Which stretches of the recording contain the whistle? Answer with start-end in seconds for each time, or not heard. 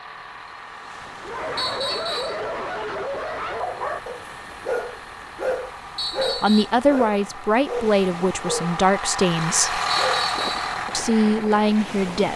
1.6-2.4, 6.0-6.7, 10.0-10.7.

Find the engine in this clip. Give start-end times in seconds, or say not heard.
0.0-12.1.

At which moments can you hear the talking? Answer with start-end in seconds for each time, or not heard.
6.3-9.8, 10.9-12.3.